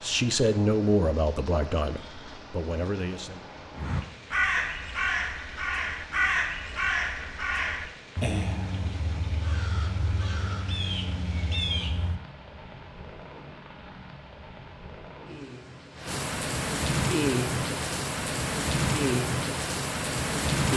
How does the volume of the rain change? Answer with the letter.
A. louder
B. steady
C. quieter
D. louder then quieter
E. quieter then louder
A.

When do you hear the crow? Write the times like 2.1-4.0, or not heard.
3.7-12.3.